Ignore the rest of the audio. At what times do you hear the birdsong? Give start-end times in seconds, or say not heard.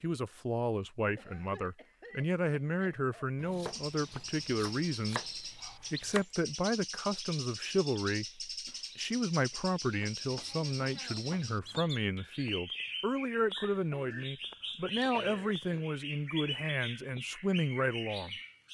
3.6-18.6.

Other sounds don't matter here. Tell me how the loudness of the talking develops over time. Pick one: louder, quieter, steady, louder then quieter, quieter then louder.
steady.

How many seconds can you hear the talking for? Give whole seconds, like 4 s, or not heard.
18 s.